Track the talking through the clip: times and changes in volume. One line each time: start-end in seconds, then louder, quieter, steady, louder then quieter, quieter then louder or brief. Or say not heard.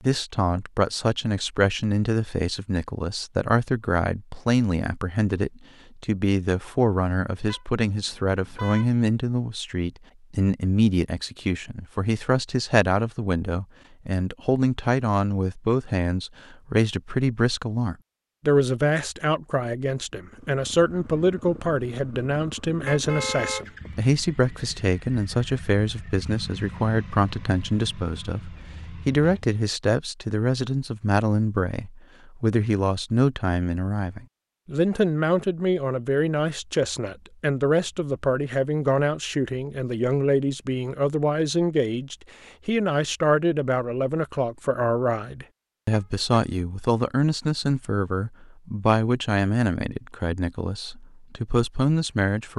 0.0-52.5 steady.